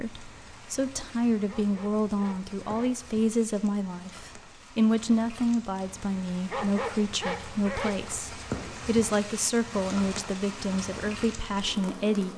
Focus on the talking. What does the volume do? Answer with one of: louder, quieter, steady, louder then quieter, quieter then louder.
steady.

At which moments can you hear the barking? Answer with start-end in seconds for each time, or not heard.
1.4-3.0, 6.5-8.0.